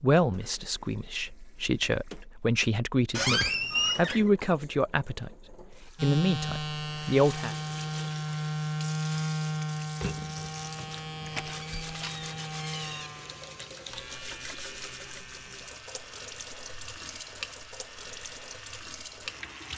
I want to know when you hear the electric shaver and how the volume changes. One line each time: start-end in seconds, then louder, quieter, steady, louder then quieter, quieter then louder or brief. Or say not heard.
6.0-19.7 quieter.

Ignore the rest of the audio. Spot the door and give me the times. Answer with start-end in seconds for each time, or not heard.
3.1-4.3, 11.2-13.1.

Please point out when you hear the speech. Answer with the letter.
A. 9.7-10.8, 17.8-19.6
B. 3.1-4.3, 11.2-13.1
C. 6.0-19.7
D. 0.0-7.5
D.